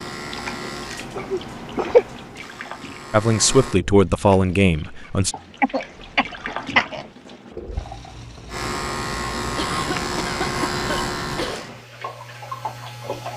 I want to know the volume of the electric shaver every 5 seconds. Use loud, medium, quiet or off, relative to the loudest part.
medium, loud, loud.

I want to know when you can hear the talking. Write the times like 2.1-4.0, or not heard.
3.1-5.3.